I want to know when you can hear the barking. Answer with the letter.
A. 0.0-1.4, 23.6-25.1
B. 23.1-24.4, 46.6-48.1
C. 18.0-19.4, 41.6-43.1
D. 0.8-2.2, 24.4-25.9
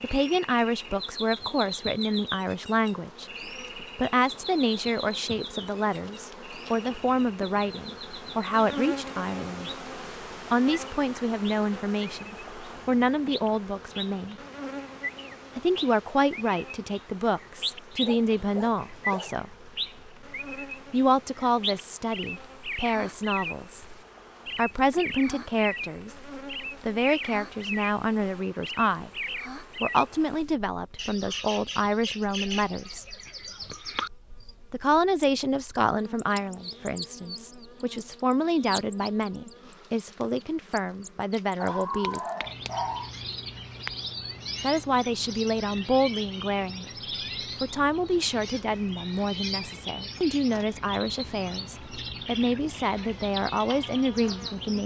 C.